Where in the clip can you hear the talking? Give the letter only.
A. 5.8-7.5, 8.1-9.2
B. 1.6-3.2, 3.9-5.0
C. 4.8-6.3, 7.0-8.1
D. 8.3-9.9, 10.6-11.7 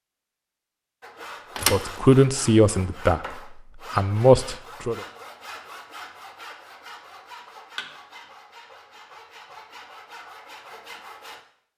B.